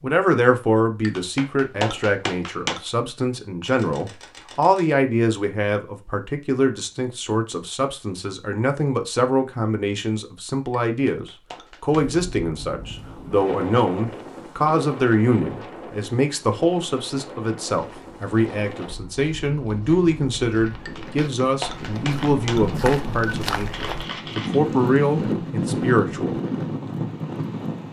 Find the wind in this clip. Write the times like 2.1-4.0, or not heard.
11.9-27.8.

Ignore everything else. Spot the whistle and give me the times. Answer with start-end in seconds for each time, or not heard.
not heard.